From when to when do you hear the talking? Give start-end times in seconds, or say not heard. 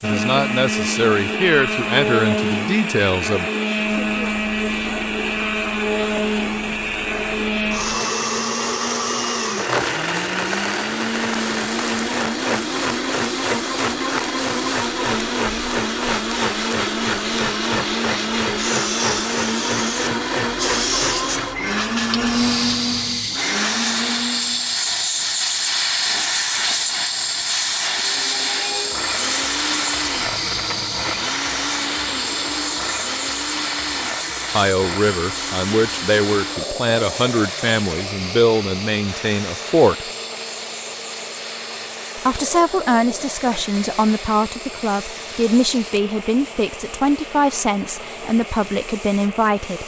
0.0-3.5, 34.5-40.0, 42.1-49.8.